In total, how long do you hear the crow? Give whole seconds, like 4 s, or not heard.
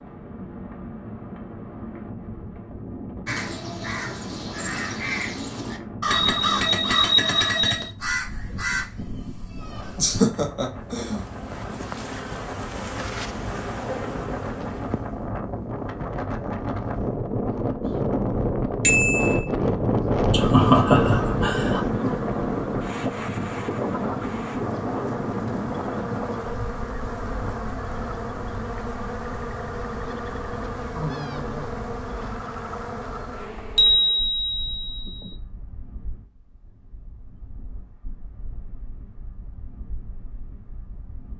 7 s.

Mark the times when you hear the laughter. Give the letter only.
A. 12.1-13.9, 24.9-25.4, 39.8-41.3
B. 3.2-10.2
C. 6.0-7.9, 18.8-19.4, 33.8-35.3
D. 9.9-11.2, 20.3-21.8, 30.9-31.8
D.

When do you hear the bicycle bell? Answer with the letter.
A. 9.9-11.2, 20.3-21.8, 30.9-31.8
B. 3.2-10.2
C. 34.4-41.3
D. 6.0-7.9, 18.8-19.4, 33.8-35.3
D.